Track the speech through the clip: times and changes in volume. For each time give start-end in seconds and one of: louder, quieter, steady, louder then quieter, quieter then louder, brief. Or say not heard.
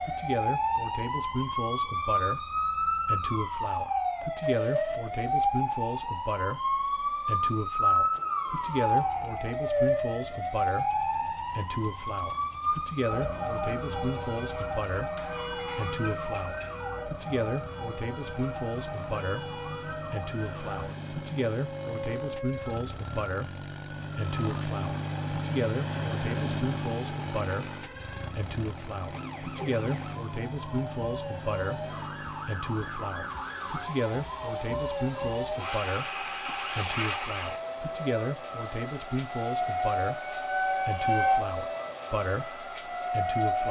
0.0-43.6 steady.